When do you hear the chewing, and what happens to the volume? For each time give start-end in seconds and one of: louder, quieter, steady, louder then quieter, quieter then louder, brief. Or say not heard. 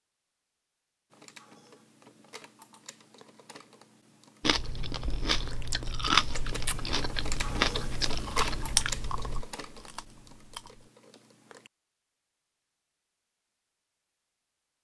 4.4-10.9 louder then quieter.